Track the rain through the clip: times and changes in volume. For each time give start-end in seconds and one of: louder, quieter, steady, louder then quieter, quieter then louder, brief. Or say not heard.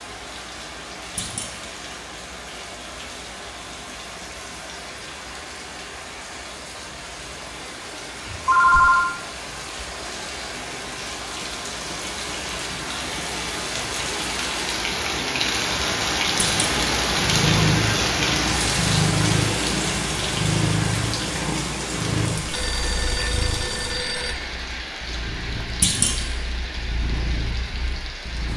0.0-28.5 louder then quieter.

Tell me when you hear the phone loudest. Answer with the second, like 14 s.
9 s.